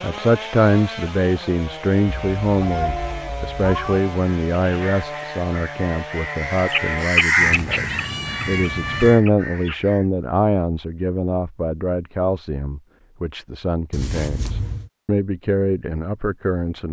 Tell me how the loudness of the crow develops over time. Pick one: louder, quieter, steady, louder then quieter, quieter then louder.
louder then quieter.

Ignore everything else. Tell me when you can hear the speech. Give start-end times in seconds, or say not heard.
0.0-16.8.